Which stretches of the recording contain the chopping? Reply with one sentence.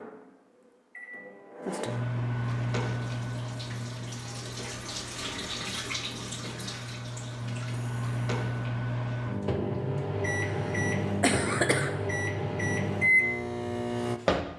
You can't hear the chopping here.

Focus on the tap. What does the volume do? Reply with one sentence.
The loudness of the tap goes up, then down.